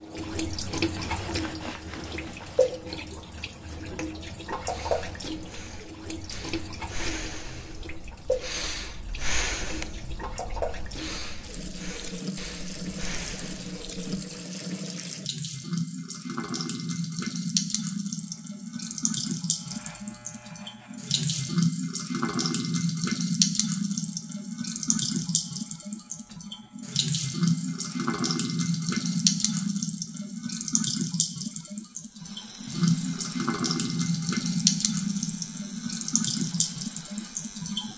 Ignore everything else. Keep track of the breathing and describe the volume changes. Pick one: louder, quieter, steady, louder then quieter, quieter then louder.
louder then quieter.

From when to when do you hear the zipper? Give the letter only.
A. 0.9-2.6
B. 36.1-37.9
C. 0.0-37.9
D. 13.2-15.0
A.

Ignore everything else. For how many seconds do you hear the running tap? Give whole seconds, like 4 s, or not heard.
38 s.